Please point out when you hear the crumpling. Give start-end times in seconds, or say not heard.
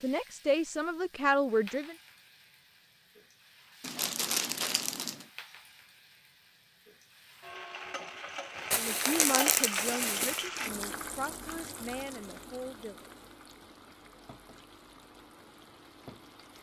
3.8-5.2, 8.7-10.4.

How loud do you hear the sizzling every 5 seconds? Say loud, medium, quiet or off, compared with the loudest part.
quiet, loud, loud, quiet.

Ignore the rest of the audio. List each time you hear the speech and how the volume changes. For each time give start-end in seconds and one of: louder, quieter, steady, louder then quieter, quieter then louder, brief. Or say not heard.
0.0-1.9 brief
8.8-13.1 quieter.